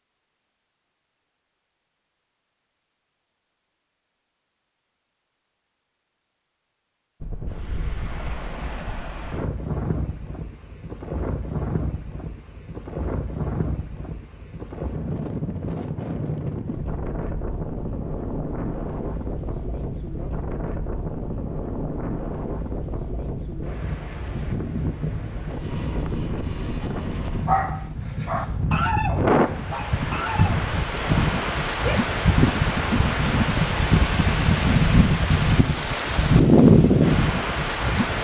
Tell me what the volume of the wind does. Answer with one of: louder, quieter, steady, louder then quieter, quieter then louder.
louder.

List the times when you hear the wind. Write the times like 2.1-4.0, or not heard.
7.2-38.2.